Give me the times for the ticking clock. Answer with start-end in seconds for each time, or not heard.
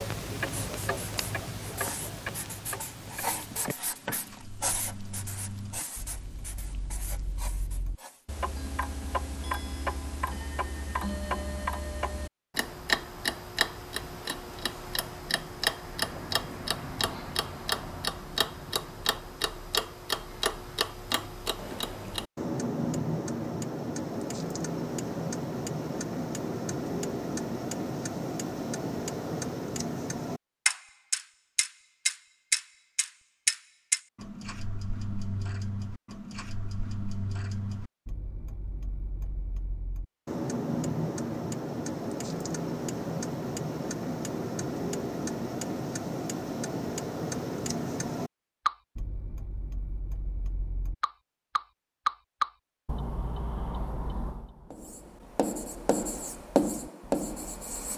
0.0-57.9.